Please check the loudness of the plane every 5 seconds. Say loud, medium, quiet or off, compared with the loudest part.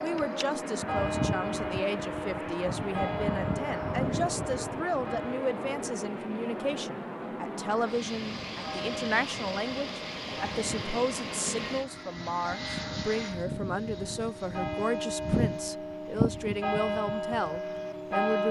loud, loud, loud, quiet.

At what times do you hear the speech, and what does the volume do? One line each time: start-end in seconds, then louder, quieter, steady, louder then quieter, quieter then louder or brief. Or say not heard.
0.0-18.4 steady.